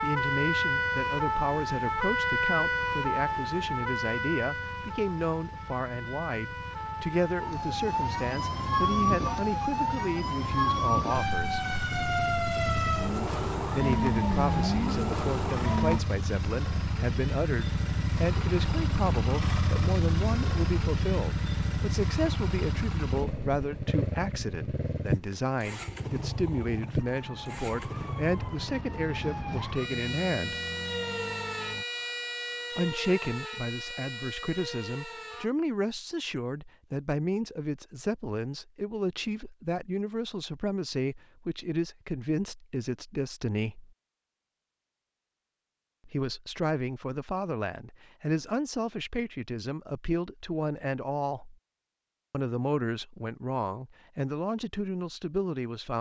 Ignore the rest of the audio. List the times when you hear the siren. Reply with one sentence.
The siren can be heard from 0.0 to 16.0 s and from 26.9 to 35.5 s.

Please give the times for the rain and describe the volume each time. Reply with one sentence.
You can't hear the rain here.